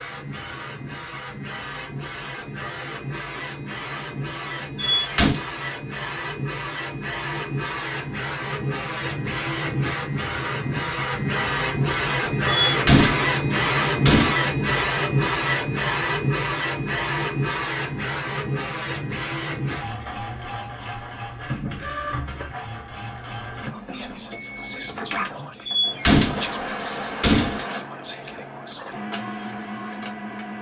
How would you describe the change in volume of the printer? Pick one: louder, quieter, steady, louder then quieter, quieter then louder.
louder then quieter.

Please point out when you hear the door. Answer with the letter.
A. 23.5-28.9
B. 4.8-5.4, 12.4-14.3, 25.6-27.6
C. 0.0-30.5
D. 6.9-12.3
B.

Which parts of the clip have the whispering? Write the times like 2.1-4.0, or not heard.
23.5-28.9.